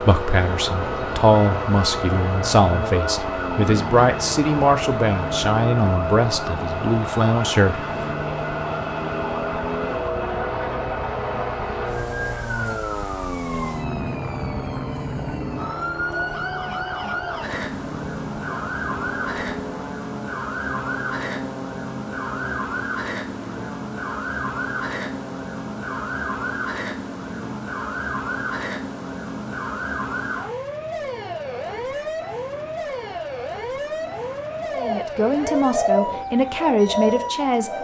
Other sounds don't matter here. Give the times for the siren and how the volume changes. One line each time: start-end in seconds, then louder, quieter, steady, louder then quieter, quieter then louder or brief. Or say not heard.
0.0-37.7 steady.